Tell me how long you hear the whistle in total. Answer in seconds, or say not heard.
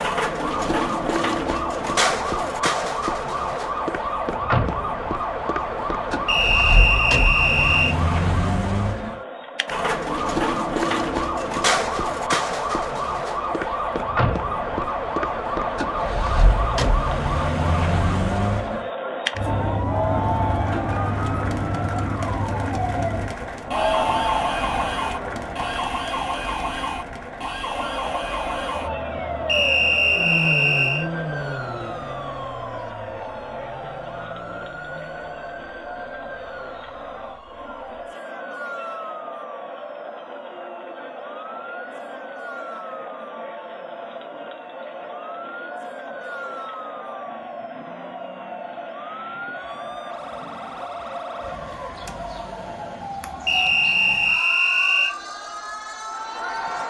5 s.